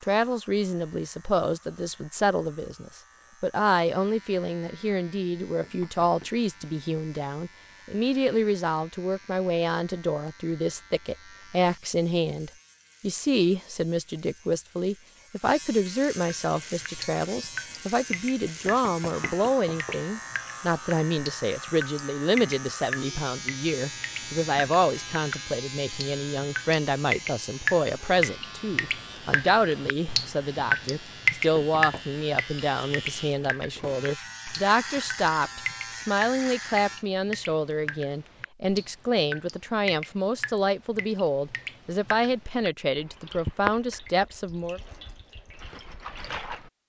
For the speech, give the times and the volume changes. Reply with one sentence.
You can hear the speech from 0.0 to 44.8 s, at a steady volume.